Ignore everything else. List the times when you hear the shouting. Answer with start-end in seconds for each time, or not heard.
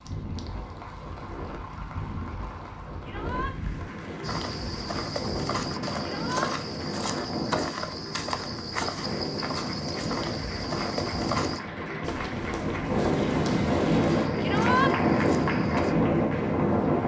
3.0-3.5, 6.0-6.5, 14.4-14.9.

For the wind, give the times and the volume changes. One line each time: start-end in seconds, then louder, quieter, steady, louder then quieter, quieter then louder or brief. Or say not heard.
0.0-17.0 louder.